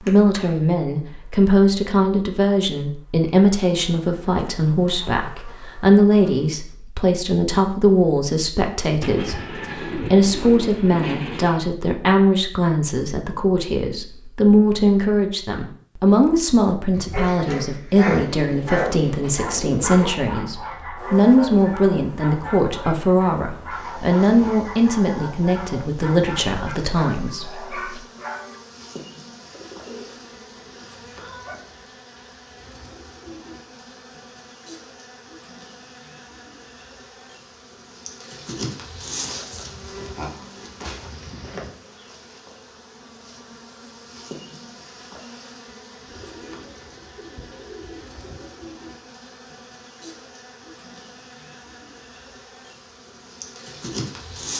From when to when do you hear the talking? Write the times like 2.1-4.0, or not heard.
0.1-28.0.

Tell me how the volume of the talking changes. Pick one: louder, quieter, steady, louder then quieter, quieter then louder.
steady.